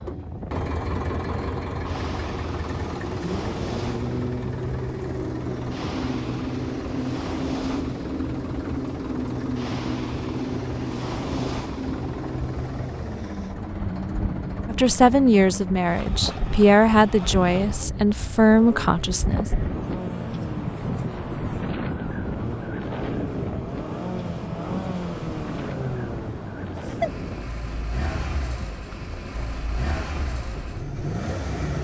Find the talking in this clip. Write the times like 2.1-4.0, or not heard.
14.7-19.5.